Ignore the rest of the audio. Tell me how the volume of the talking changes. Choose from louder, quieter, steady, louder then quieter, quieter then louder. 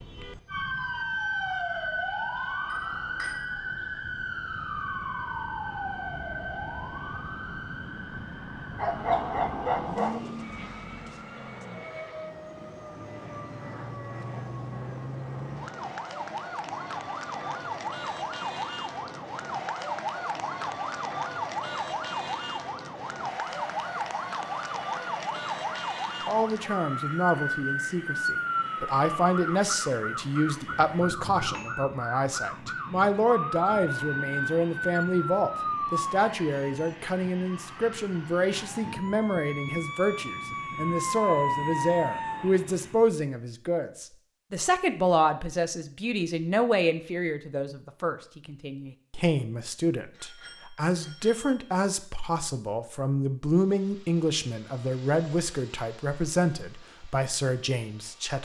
steady.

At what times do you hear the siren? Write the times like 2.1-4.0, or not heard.
0.0-42.5.